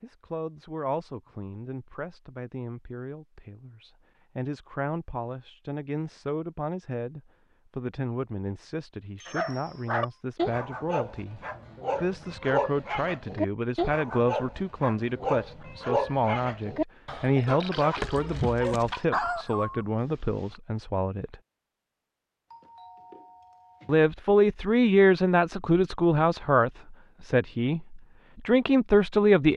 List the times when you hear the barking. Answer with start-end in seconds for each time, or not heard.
9.2-20.6.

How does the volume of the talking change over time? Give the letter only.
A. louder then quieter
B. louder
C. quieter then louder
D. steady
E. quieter
B.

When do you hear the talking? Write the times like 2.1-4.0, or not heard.
0.0-11.4, 12.0-21.4, 23.9-29.5.